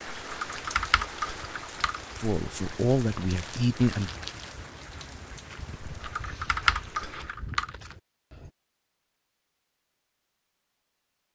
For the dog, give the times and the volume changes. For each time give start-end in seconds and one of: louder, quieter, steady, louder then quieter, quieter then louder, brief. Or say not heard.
not heard.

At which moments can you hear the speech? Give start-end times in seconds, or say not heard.
2.2-4.1.